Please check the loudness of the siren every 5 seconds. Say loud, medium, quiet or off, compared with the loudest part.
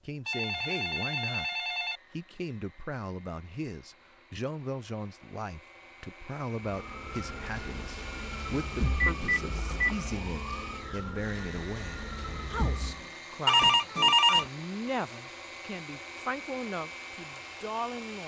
off, loud, loud, off.